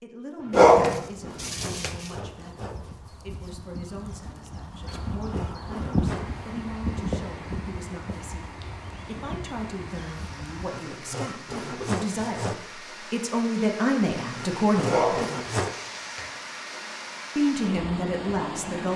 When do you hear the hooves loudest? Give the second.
6 s.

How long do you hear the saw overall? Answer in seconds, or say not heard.
8 s.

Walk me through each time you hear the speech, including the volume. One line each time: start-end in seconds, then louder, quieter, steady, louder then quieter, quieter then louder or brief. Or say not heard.
0.0-15.2 louder
17.4-18.9 brief.